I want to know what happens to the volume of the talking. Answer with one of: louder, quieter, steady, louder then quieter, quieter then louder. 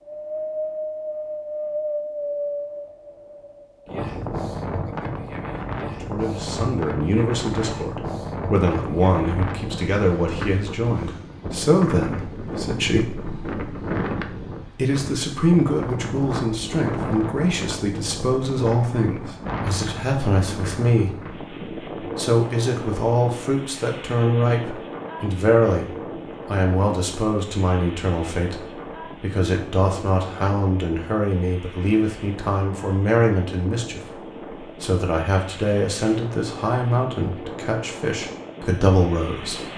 steady.